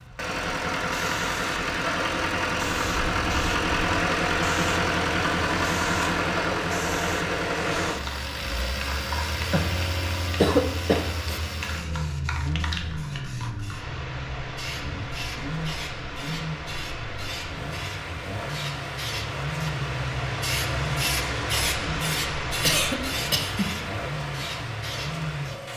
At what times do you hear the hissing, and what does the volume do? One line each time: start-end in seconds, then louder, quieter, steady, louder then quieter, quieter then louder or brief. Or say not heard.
0.0-25.7 louder.